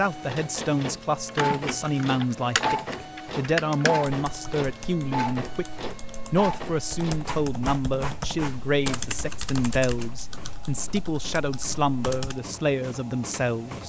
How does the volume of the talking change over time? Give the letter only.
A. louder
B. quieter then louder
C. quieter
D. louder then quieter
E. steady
E.